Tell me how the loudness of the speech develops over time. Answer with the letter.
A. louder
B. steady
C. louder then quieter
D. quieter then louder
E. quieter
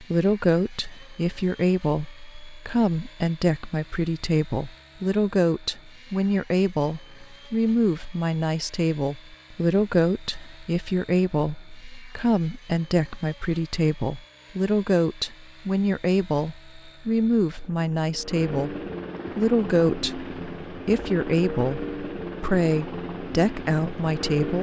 B.